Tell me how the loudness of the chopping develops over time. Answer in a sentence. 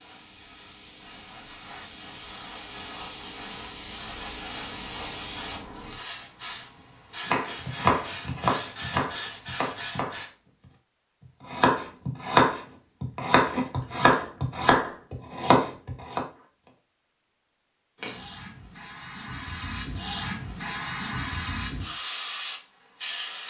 The volume of the chopping goes down, then up.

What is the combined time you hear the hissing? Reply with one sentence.
You can hear the hissing for 16 seconds altogether.